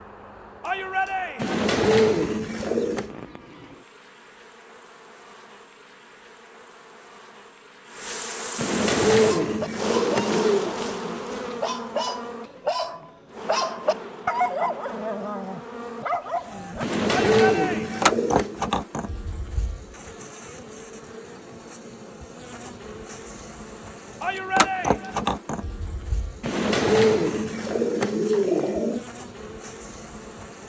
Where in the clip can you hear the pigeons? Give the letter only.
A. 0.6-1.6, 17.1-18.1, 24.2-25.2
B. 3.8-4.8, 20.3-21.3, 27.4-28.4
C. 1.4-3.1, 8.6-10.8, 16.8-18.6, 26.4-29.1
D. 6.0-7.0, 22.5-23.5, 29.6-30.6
C.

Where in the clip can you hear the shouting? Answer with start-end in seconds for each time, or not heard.
0.6-1.6, 17.1-18.1, 24.2-25.2.